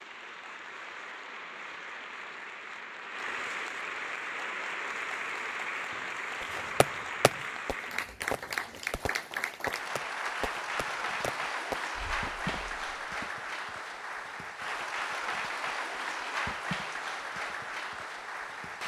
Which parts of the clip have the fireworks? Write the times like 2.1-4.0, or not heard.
6.4-13.2.